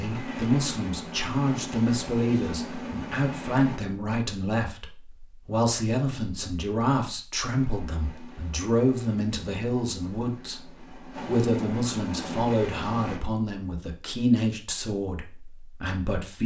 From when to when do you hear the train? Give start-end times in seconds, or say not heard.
0.0-3.8, 7.5-13.2.